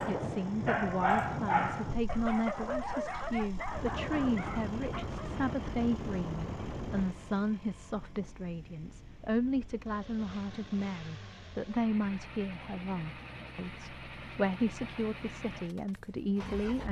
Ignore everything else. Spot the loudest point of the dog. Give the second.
1 s.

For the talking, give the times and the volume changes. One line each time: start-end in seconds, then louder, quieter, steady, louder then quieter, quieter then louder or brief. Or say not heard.
0.0-16.8 steady.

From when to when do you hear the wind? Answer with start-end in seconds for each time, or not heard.
0.0-10.9.